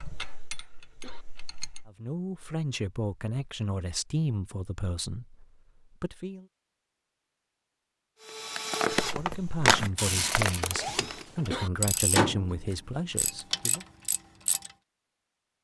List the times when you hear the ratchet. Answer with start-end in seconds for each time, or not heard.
0.0-1.9, 9.2-14.7.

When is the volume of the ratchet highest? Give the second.
12 s.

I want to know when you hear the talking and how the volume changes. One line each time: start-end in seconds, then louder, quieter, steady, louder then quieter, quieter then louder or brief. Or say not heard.
1.9-6.5 quieter
9.2-13.8 steady.